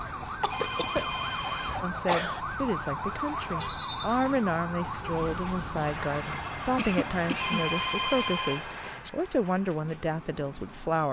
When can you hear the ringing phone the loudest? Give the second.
8 s.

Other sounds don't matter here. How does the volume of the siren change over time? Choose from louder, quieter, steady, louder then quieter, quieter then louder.
quieter.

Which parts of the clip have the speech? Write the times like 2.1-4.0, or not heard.
1.8-11.0.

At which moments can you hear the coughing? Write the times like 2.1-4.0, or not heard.
0.4-2.4, 6.8-7.7.